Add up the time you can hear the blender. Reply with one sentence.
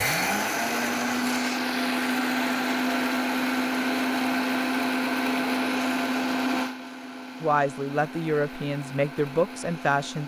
The blender can be heard for 10 seconds in total.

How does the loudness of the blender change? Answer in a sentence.
The volume of the blender goes down.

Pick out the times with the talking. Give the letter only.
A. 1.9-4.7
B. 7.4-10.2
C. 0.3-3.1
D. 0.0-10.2
B.